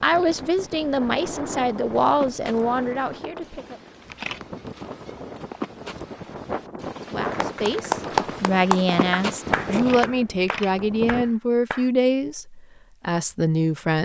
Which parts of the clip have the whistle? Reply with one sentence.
You can't hear the whistle here.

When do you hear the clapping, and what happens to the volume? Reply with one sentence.
You can hear the clapping from 7.2 to 11.9 s, getting quieter.